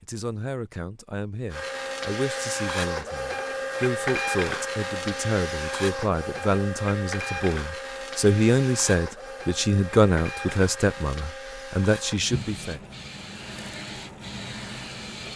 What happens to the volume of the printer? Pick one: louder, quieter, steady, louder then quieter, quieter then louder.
quieter.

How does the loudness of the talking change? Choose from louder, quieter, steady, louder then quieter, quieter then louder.
louder.